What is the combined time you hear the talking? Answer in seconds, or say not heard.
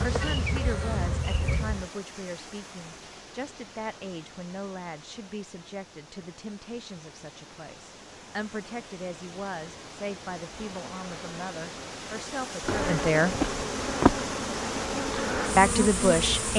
14 s.